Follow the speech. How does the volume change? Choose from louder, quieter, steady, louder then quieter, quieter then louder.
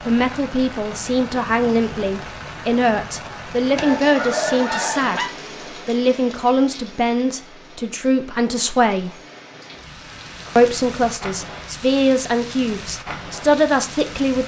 steady.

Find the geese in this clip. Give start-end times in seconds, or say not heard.
3.8-5.3.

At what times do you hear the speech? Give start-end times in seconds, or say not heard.
0.0-9.2, 10.6-14.4.